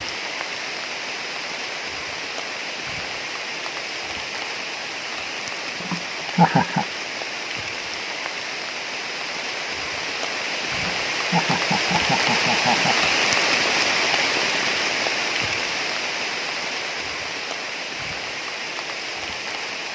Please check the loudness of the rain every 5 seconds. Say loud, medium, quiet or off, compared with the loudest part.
medium, medium, loud, medium.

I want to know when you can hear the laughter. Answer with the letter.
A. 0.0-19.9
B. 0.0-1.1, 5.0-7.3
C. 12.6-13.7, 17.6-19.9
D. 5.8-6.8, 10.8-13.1
D.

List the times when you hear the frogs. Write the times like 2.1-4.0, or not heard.
not heard.